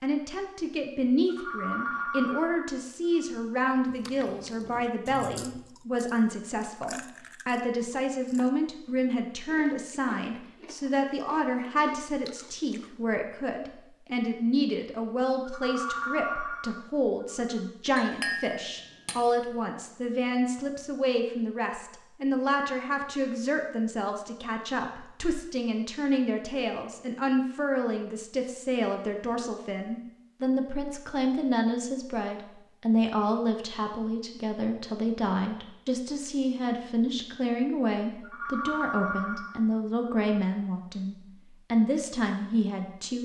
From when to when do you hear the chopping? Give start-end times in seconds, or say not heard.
not heard.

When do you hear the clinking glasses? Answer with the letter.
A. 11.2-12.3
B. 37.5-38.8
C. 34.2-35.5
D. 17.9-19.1
D.